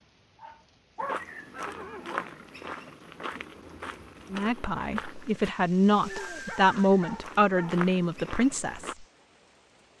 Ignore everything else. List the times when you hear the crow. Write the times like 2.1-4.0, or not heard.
not heard.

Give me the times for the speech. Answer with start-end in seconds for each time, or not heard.
4.3-9.1.